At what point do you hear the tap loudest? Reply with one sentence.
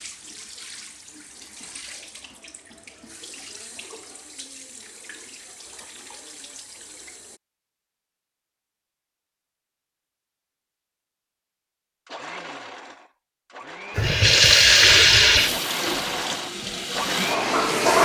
The volume of the tap peaks at 15 seconds.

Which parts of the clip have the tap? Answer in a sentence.
You can hear the tap from 0.0 to 7.4 s and from 13.9 to 18.0 s.